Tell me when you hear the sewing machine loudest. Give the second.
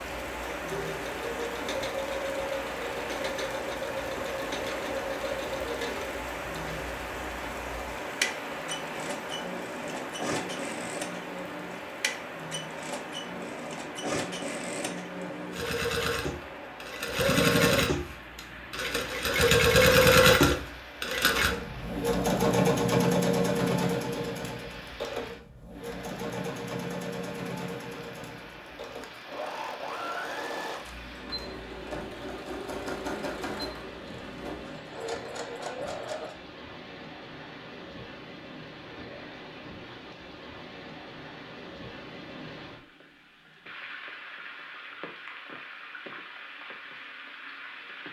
20 s.